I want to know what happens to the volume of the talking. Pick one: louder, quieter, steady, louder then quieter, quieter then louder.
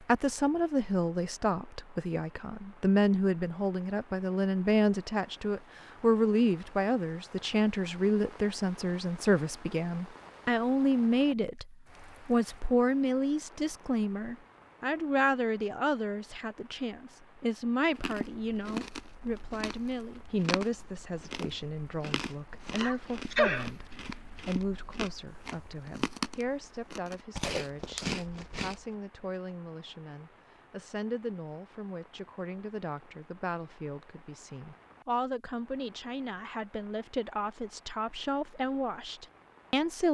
quieter.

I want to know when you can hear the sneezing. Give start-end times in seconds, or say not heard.
22.8-23.7.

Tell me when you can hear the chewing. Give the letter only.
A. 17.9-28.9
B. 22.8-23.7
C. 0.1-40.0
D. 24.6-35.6
A.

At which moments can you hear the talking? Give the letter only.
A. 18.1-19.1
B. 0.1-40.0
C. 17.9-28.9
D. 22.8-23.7
B.